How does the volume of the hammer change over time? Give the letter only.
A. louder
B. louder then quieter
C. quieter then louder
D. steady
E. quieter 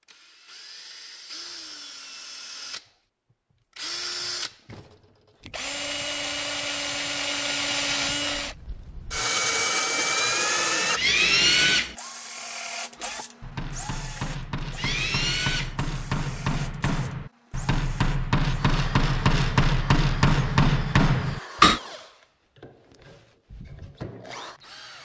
A.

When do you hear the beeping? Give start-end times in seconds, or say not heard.
not heard.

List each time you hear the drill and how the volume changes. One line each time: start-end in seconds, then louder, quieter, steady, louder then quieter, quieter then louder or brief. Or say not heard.
0.1-25.0 louder then quieter.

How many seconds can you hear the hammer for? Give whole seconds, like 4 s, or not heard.
9 s.